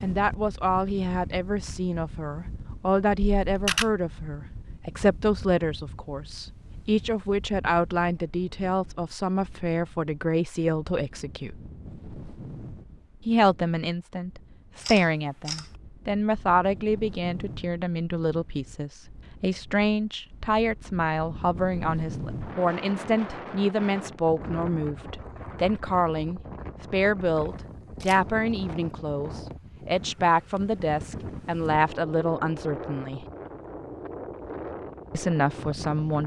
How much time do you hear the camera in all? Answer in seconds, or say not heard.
2 s.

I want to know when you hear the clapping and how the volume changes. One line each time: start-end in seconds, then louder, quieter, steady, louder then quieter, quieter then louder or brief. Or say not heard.
not heard.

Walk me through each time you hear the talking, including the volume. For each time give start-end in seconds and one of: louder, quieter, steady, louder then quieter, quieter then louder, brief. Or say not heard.
0.0-11.6 steady
13.2-33.2 steady
35.1-36.2 brief.